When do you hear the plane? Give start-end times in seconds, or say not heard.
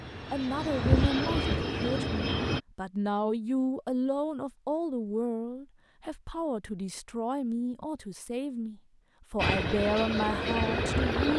0.0-2.6, 9.3-11.3.